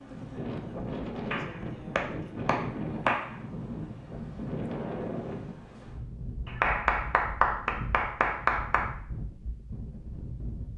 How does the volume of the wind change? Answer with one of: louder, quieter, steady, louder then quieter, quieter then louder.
quieter.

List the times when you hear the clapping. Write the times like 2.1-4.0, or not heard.
1.3-3.4, 6.5-8.9.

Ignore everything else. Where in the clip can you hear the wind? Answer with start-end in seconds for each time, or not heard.
0.0-10.7.